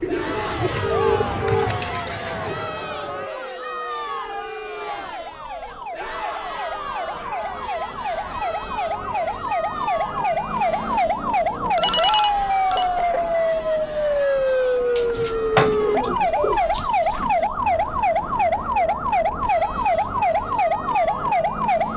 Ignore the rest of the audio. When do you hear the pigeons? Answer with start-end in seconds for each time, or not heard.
0.0-2.8, 14.9-17.5.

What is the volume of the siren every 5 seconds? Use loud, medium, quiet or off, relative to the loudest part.
quiet, medium, loud, loud, loud.